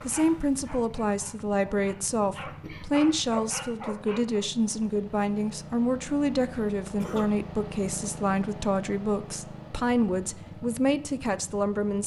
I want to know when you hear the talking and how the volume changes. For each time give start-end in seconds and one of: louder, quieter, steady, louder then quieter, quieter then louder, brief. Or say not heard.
0.1-12.0 steady.